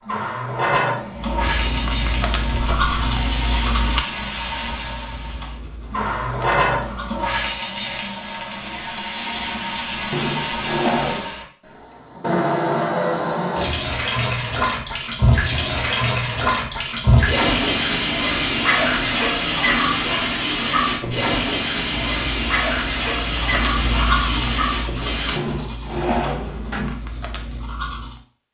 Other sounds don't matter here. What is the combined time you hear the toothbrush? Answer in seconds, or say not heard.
13 s.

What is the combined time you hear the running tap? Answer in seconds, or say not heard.
25 s.